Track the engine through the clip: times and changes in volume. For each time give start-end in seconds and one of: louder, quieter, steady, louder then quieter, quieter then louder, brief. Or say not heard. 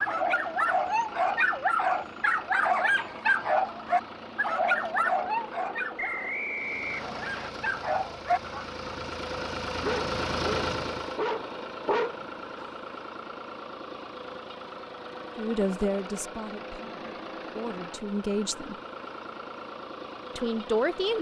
0.0-21.1 louder then quieter.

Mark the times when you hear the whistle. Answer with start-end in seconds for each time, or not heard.
6.0-7.5.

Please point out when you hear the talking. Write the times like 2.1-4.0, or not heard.
15.3-18.8, 20.4-21.1.